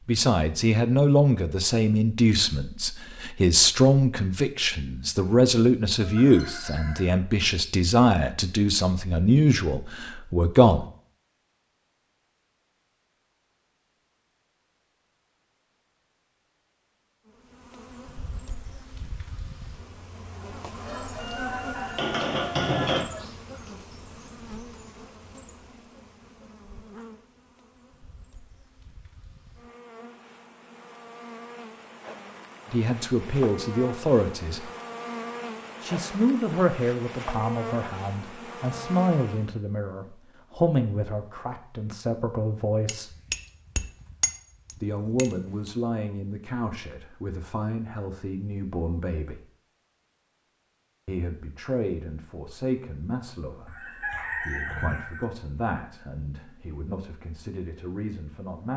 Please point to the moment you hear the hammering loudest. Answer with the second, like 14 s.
23 s.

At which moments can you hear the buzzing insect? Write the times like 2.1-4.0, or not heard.
17.2-39.5.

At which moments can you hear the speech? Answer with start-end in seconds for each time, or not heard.
0.1-10.9, 32.6-34.7, 35.8-43.1, 44.8-49.5, 51.0-58.7.